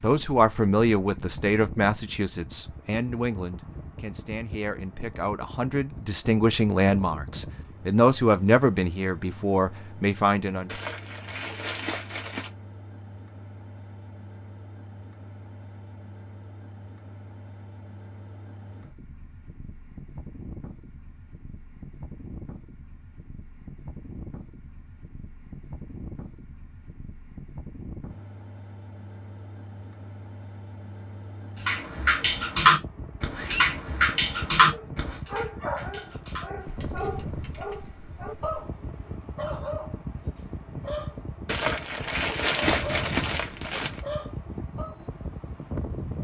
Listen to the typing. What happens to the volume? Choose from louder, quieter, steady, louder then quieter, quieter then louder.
quieter.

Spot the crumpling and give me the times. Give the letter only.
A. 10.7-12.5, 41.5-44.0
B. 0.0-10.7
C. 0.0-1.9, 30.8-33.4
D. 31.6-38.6
A.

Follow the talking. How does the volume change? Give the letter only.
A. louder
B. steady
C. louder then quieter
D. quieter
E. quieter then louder
E.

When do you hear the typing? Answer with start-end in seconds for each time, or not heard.
31.6-38.6.